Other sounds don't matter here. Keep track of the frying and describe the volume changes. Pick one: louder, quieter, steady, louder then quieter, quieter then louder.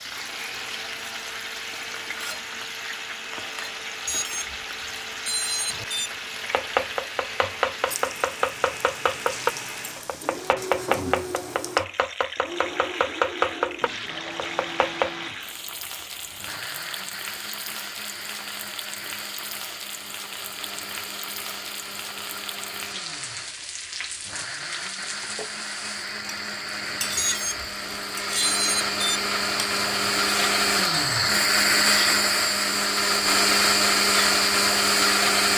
steady.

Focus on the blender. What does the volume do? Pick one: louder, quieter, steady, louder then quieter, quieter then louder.
louder.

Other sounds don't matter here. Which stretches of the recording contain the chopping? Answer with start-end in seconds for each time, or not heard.
6.5-15.1.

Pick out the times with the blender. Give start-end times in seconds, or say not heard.
0.0-35.5.